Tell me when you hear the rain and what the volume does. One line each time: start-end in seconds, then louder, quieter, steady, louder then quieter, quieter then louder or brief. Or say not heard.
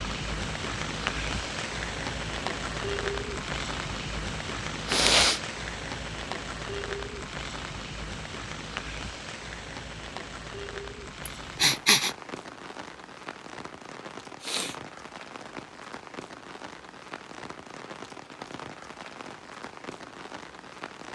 0.0-21.1 quieter.